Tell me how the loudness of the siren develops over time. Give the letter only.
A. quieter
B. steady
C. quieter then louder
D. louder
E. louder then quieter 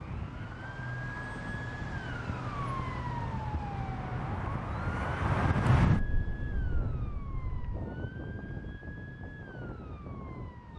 A.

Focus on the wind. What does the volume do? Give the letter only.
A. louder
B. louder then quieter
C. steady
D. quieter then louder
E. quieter
B.